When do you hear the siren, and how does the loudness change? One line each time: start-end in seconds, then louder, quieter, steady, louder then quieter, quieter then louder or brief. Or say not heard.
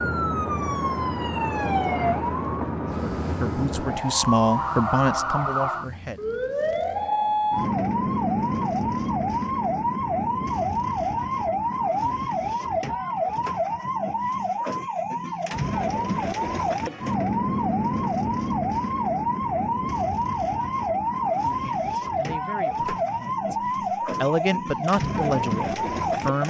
0.0-26.4 steady.